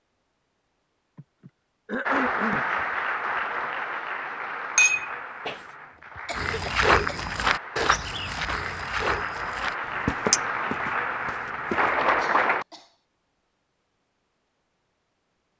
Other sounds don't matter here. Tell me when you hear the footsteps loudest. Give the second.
7 s.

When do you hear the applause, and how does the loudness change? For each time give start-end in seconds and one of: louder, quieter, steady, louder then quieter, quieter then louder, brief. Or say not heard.
2.0-12.7 quieter then louder.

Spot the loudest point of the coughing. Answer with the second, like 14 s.
2 s.